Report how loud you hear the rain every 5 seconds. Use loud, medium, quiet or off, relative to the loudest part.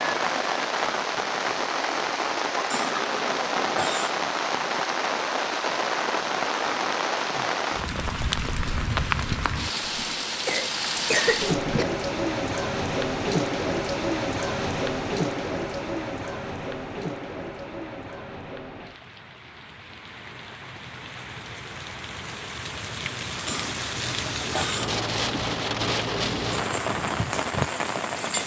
loud, loud, loud, medium, medium, loud.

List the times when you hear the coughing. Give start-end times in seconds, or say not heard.
2.7-4.2, 9.8-11.8, 23.4-24.9.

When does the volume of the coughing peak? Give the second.
11 s.